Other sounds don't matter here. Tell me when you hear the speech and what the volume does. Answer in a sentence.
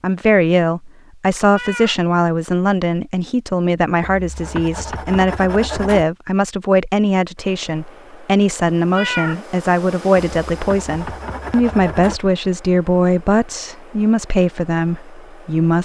You can hear the speech from 0.0 to 15.8 s, at a steady volume.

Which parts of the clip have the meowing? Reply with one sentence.
The meowing can be heard from 1.5 to 2.0 s and from 8.9 to 9.4 s.